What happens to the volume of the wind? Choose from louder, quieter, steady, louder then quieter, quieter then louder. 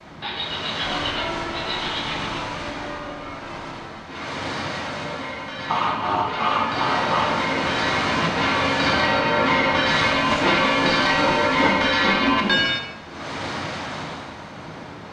louder then quieter.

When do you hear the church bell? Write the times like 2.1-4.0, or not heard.
0.8-12.8.